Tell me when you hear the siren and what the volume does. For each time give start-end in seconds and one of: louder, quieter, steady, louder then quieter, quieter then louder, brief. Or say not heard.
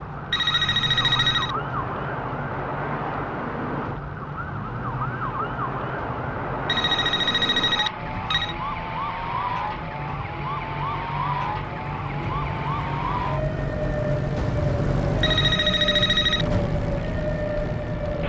0.0-18.2 steady.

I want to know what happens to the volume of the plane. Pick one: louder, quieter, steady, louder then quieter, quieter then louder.
louder.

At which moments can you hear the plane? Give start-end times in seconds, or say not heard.
0.0-18.2.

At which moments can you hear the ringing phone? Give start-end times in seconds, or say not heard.
0.3-1.6, 6.7-8.6, 15.2-16.4.